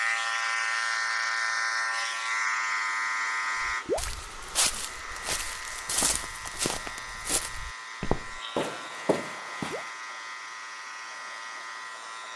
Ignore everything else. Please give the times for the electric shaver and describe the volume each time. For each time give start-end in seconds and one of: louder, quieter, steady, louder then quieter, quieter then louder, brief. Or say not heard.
0.0-12.3 quieter.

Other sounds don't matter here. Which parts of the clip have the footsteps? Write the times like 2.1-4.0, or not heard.
3.6-9.9.